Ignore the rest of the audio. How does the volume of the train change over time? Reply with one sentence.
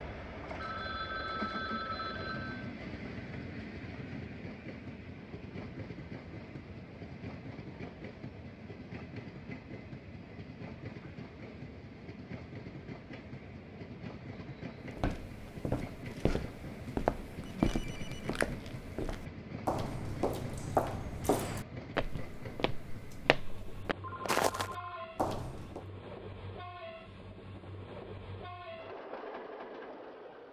The volume of the train stays about the same.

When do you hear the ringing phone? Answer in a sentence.
The ringing phone can be heard from 0.6 to 2.7 s, from 17.4 to 18.4 s and from 24.0 to 25.1 s.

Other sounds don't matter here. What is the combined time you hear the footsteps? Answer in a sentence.
You can hear the footsteps for 11 seconds altogether.